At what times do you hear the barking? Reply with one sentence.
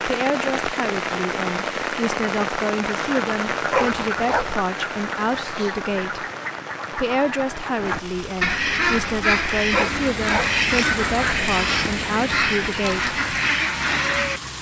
You can hear the barking from 3.7 to 4.5 s and from 9.7 to 10.6 s.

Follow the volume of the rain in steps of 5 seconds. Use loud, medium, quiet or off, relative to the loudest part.
loud, medium, loud.